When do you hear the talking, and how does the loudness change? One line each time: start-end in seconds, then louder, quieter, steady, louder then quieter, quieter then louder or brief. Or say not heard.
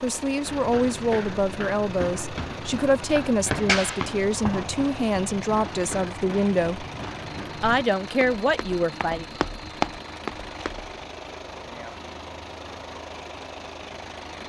0.0-6.8 steady
7.6-9.2 brief.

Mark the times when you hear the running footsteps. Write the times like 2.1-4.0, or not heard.
0.5-10.9.